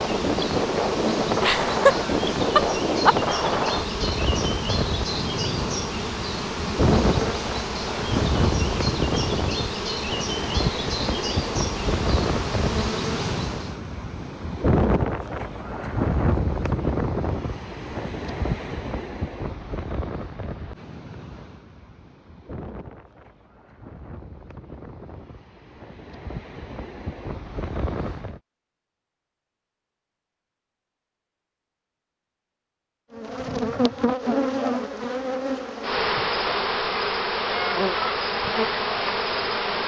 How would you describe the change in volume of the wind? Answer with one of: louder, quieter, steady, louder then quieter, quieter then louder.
quieter.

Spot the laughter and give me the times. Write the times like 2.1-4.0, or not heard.
1.4-3.1.